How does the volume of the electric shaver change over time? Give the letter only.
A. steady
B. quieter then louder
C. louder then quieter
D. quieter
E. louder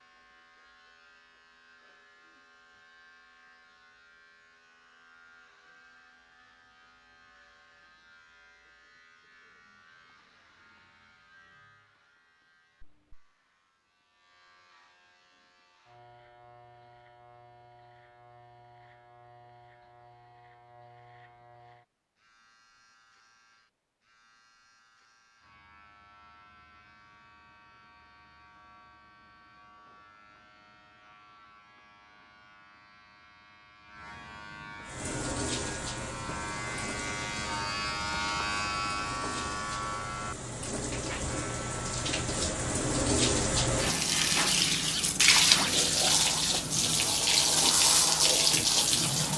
E.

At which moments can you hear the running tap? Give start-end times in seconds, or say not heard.
34.9-49.3.